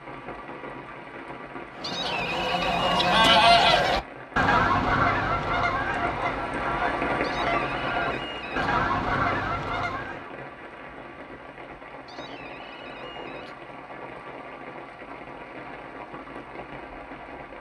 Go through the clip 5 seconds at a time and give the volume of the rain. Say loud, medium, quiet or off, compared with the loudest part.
medium, loud, medium, medium.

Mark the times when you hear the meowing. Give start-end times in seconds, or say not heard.
1.8-3.0, 7.2-8.7, 12.1-13.7.